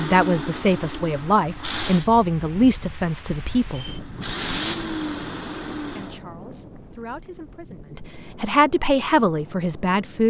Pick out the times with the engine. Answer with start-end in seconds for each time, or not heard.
0.0-2.1, 3.8-6.2.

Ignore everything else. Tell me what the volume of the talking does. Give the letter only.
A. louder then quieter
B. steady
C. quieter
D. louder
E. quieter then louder
E.